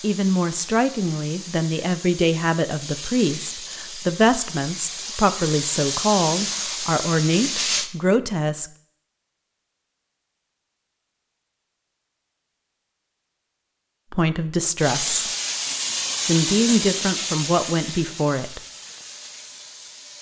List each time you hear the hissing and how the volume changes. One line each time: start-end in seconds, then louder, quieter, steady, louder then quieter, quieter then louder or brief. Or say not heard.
0.0-7.9 louder
14.8-20.1 quieter.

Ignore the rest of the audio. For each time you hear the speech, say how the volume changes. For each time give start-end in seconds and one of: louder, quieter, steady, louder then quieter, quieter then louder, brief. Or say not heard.
0.0-8.7 steady
14.1-15.3 brief
16.2-18.6 brief.